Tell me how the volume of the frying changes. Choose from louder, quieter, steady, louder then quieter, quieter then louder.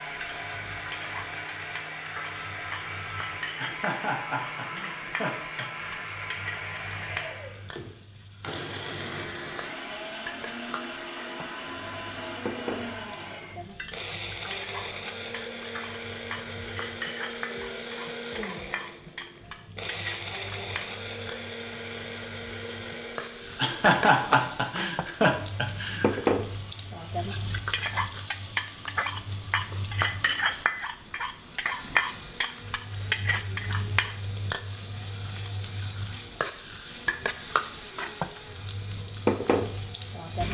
louder.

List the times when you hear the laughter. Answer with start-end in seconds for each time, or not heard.
3.5-6.0, 23.6-26.2.